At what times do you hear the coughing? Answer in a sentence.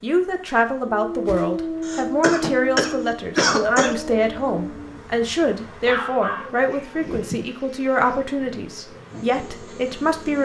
The coughing can be heard from 1.8 to 4.0 s.